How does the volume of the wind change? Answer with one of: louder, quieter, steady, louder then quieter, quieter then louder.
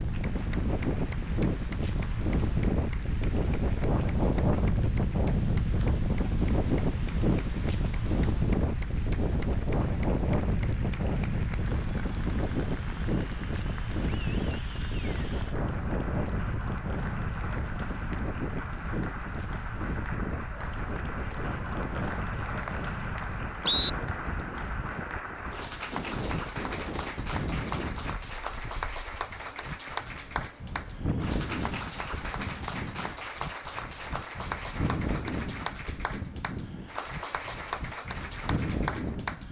quieter.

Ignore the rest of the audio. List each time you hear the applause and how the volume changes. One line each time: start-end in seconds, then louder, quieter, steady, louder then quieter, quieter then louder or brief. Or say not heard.
0.0-39.4 louder.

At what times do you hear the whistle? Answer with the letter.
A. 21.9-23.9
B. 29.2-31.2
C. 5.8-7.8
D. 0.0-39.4
A.